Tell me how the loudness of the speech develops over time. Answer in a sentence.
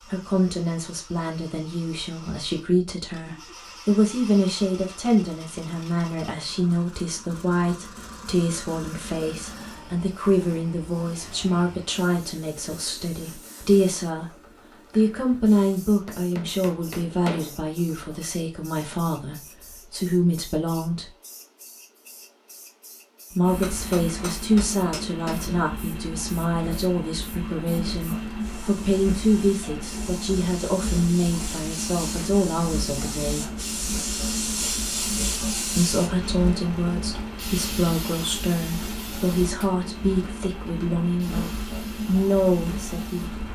The volume of the speech stays about the same.